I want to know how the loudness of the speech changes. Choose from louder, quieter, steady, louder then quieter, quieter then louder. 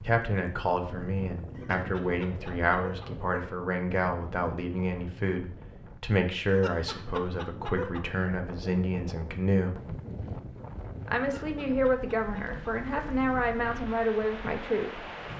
steady.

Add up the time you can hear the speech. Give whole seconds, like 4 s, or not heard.
14 s.